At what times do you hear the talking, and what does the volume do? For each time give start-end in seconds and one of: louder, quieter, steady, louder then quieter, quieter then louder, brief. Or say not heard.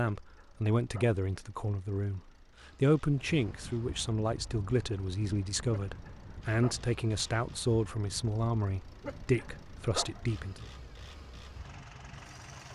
0.0-2.2 brief
2.8-10.7 steady.